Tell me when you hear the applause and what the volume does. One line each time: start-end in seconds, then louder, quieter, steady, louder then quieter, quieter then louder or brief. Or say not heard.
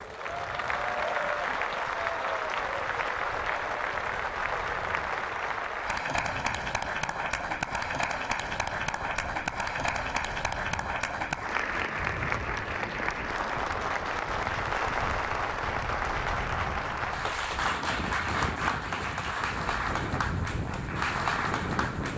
0.0-22.1 steady.